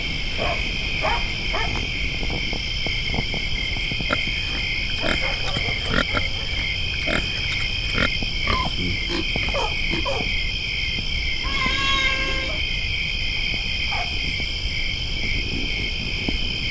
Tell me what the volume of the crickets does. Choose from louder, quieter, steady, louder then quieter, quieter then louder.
steady.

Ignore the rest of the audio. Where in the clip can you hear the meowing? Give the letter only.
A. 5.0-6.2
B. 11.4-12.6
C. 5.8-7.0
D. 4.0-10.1
B.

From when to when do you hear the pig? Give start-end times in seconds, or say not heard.
4.0-10.1.